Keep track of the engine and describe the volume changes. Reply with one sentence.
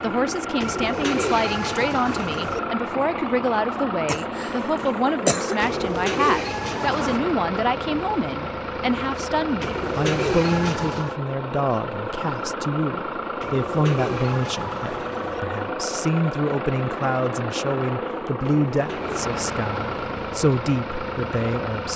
The volume of the engine stays about the same.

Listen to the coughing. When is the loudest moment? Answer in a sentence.
The loudest moment of the coughing is at 5 seconds.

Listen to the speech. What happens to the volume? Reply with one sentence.
The loudness of the speech stays about the same.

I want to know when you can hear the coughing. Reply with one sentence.
You can hear the coughing from 4.0 to 5.8 s.